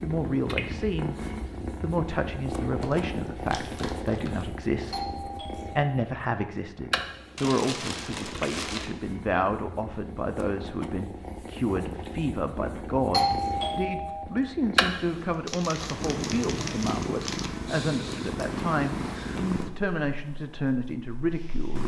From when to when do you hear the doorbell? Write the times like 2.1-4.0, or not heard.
4.9-5.8, 13.1-14.2.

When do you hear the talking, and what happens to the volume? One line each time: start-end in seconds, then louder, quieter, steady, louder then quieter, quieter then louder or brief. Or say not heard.
0.0-1.1 brief
1.8-21.8 steady.